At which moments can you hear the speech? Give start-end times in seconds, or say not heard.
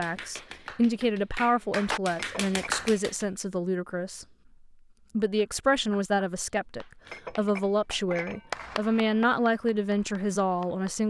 0.0-4.2, 5.2-11.0.